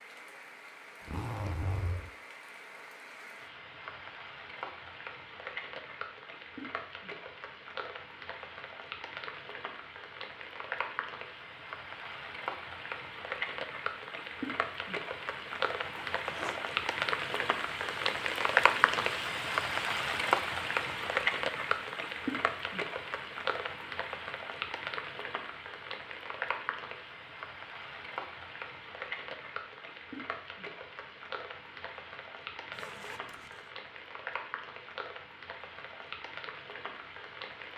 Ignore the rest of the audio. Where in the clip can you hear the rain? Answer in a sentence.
You can hear the rain from 0.0 to 37.7 s.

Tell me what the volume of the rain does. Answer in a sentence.
The volume of the rain goes up, then down.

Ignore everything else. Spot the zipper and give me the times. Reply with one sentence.
You can hear the zipper from 1.0 to 2.1 s, from 15.9 to 16.6 s and from 32.7 to 33.7 s.